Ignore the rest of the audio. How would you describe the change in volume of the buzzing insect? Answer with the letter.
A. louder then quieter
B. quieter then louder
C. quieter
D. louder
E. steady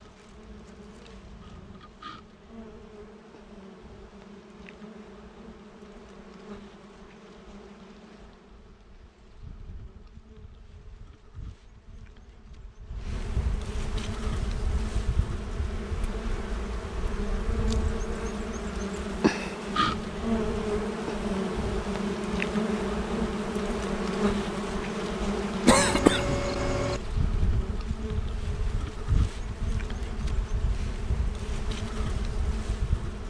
A.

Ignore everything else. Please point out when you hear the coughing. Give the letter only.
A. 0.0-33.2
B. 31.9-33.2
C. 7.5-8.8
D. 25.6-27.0
D.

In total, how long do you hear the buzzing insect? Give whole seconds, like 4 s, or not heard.
33 s.